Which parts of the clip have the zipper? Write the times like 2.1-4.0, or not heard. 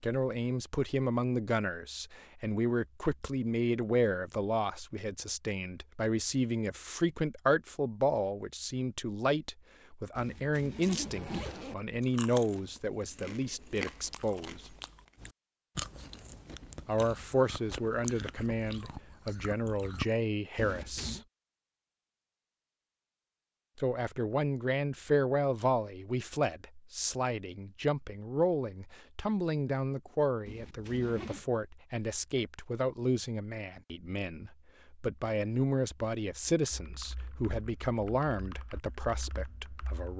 10.2-11.8, 20.6-21.2, 30.4-31.4.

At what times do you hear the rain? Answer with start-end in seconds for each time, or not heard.
not heard.